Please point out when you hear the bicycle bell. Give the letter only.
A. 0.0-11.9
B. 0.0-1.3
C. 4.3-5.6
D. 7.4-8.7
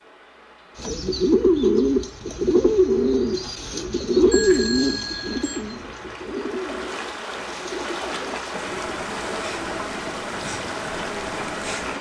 C.